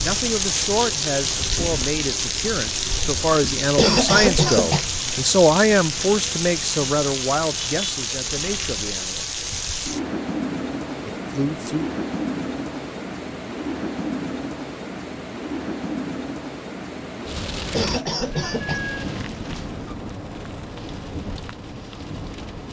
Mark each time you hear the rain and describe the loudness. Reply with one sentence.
The rain can be heard from 0.0 to 22.6 s, getting quieter.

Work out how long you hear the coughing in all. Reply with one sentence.
You can hear the coughing for 3 seconds altogether.